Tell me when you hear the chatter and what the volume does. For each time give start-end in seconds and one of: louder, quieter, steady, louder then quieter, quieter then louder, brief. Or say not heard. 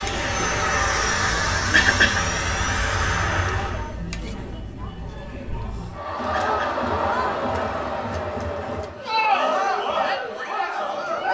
0.0-11.2 louder.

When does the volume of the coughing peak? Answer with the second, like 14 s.
2 s.